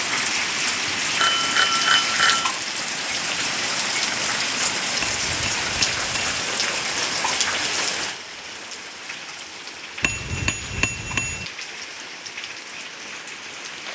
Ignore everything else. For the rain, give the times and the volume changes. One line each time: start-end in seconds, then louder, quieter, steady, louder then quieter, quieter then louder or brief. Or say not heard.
0.0-13.8 quieter.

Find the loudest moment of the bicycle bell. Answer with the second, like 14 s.
2 s.